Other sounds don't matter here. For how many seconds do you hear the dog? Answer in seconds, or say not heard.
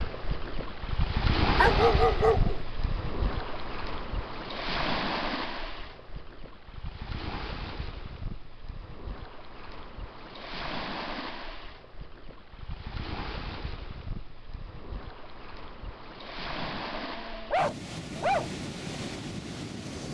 3 s.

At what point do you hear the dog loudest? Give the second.
2 s.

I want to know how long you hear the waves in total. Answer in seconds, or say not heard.
20 s.